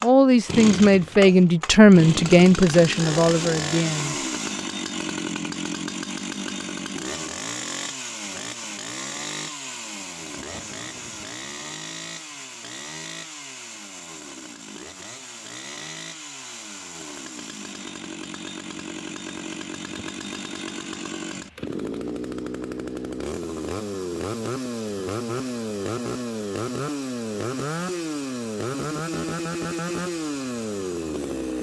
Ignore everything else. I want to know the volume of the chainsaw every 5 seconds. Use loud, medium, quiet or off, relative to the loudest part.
loud, loud, medium, medium, loud, loud, loud.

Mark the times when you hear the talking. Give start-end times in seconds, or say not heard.
0.0-4.2.